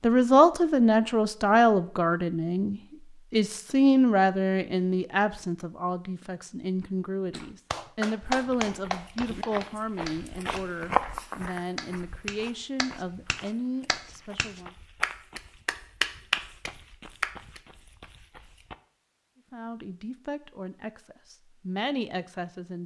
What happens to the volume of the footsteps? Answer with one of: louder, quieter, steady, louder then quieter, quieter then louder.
louder then quieter.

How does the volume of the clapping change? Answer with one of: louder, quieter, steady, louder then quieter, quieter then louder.
quieter then louder.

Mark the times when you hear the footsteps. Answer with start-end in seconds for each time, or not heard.
8.3-18.8.